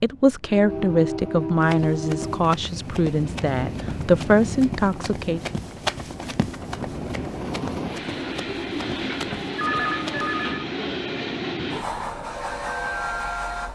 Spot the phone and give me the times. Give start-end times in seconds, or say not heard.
9.6-10.7.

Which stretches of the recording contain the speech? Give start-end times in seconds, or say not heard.
0.0-5.4.